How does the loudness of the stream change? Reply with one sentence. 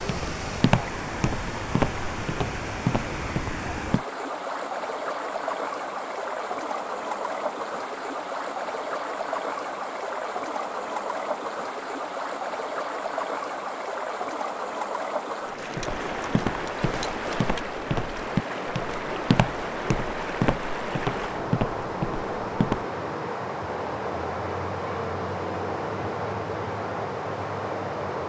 The loudness of the stream stays about the same.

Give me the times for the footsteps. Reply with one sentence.
You can hear the footsteps from 0.1 to 4.0 s and from 15.8 to 22.9 s.